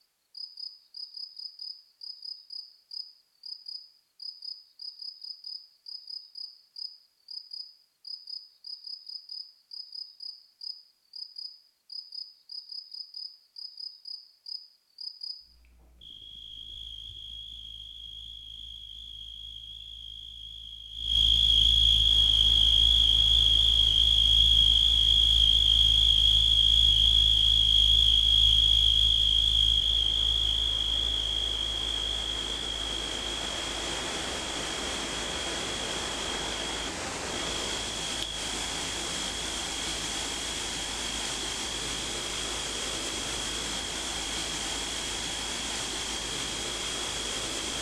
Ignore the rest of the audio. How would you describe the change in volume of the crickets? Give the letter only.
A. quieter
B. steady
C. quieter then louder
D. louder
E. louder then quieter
E.